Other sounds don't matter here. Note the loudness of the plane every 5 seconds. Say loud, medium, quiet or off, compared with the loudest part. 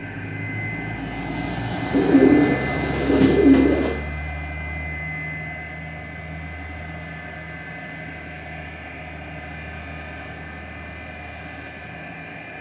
loud, medium, medium.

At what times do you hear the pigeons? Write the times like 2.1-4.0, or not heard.
1.9-3.9.